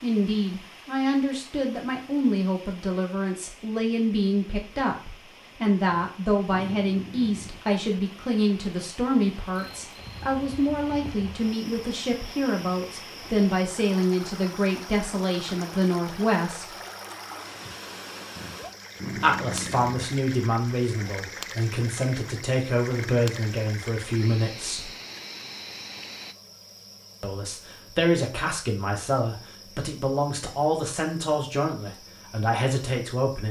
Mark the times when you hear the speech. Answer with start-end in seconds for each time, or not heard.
0.0-16.8, 19.1-24.9, 27.2-33.4.